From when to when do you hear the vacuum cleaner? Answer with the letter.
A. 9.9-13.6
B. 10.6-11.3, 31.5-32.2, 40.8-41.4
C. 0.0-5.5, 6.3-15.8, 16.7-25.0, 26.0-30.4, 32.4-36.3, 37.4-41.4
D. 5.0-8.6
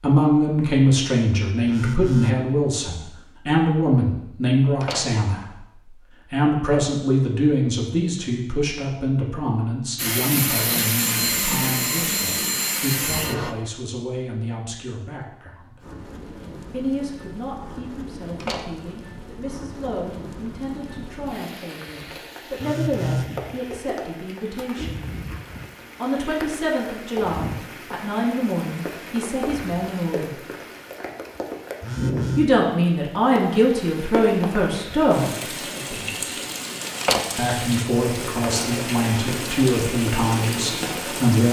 A.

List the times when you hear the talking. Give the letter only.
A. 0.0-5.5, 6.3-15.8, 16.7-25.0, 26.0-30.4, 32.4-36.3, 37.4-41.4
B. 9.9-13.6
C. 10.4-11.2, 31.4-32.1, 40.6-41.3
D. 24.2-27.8
A.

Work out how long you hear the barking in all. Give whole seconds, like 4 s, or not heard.
not heard.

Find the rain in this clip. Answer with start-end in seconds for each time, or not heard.
15.8-41.4.